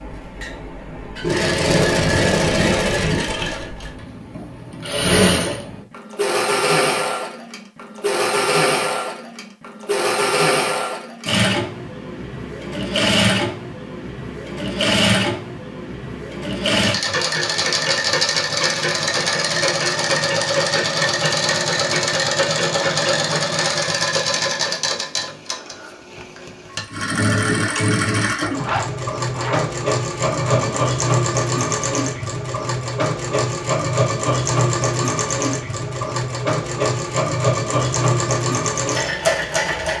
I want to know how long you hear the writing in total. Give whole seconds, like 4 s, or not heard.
not heard.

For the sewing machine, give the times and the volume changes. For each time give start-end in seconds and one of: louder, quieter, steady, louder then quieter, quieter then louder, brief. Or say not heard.
0.0-39.9 steady.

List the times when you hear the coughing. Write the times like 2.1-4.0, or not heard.
not heard.